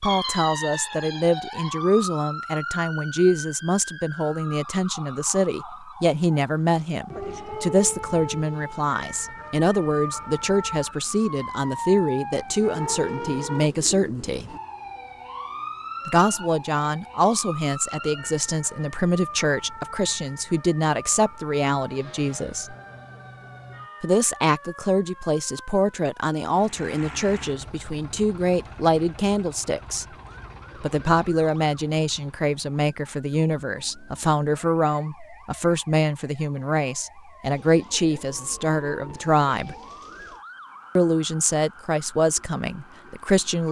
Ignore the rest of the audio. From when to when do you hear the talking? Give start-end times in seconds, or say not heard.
0.0-14.5, 16.1-22.8, 24.0-30.1, 30.8-39.8, 41.0-43.6.